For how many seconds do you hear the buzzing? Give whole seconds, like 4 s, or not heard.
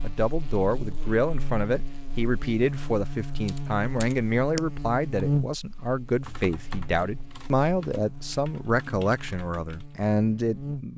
11 s.